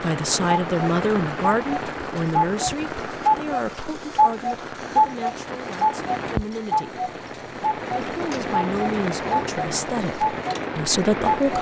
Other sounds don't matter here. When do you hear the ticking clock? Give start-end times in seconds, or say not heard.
0.0-11.5.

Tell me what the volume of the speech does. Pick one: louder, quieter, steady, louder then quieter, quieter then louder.
quieter then louder.